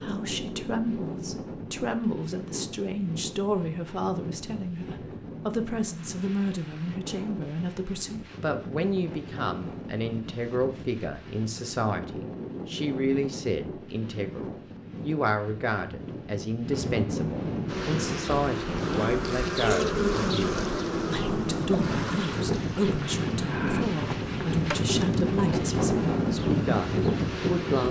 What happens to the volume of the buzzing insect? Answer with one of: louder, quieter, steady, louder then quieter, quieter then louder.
quieter.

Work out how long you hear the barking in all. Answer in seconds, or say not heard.
not heard.